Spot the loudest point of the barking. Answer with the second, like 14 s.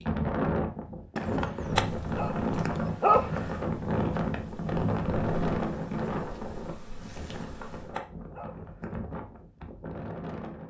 3 s.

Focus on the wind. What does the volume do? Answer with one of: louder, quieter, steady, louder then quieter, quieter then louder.
quieter.